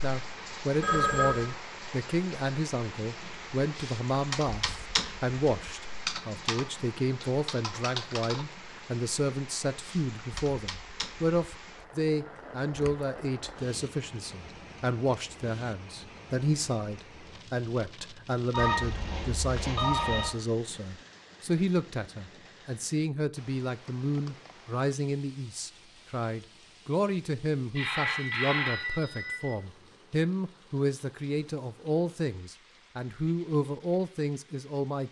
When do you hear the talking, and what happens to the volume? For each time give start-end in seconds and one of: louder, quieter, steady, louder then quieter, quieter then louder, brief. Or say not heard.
0.0-35.0 steady.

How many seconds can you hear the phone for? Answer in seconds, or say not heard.
4 s.